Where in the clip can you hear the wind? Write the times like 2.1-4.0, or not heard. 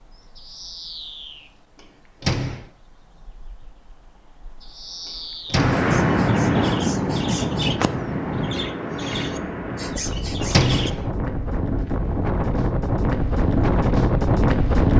5.5-14.9.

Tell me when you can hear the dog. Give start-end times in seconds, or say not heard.
not heard.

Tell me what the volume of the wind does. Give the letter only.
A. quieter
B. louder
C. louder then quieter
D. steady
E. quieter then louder
E.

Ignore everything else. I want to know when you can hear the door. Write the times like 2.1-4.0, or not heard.
2.2-2.6, 5.5-5.9, 10.5-11.0.